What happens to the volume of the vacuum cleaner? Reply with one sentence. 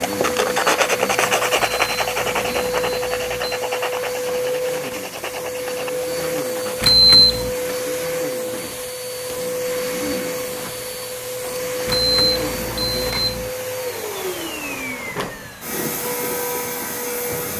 The volume of the vacuum cleaner stays about the same.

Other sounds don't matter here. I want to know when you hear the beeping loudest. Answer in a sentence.
The volume of the beeping peaks at 7 seconds.